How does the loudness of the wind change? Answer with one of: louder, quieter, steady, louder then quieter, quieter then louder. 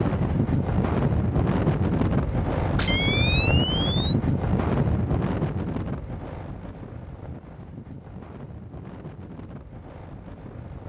quieter.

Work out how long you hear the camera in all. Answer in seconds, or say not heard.
2 s.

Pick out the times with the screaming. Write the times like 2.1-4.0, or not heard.
not heard.